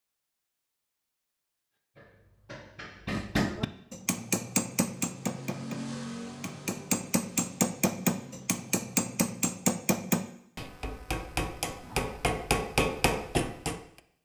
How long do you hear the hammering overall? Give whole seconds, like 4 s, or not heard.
12 s.